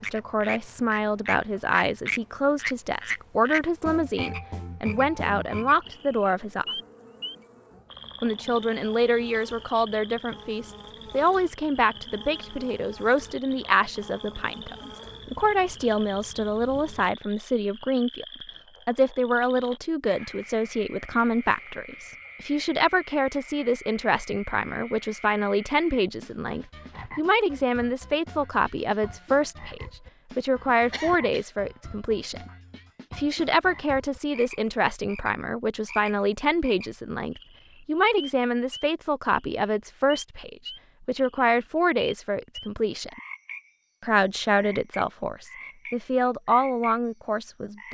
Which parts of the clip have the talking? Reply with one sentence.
The talking can be heard from 0.0 to 6.8 s, from 8.2 to 18.2 s, from 18.9 to 32.5 s, from 33.1 to 43.2 s and from 44.0 to 47.8 s.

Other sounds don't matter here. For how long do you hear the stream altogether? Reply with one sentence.
The stream can't be heard in this clip.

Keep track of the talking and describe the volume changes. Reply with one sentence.
The loudness of the talking stays about the same.